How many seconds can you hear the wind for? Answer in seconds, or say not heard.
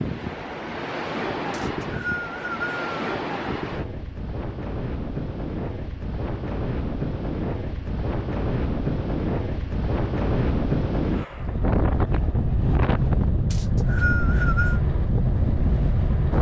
16 s.